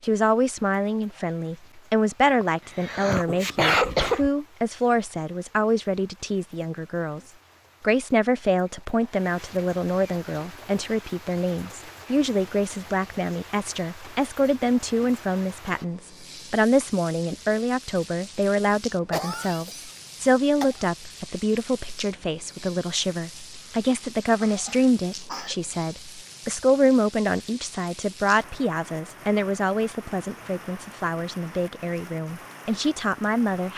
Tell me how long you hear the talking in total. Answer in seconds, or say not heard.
34 s.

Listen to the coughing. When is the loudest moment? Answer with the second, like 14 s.
4 s.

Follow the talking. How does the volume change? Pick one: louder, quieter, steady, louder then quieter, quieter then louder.
steady.